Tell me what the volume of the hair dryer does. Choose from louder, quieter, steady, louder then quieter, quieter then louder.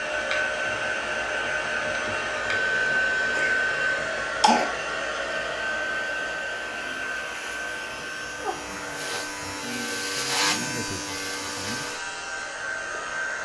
quieter.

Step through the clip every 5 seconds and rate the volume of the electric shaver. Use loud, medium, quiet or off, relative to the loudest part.
off, medium, loud.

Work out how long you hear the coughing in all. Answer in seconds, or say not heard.
2 s.